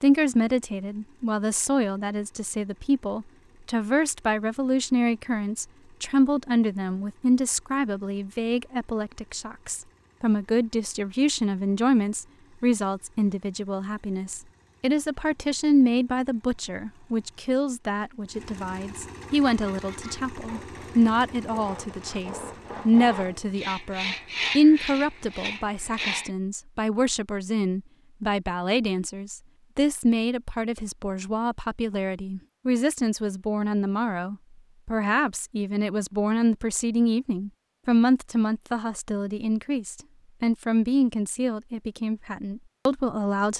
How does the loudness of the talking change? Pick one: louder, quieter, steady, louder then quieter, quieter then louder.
steady.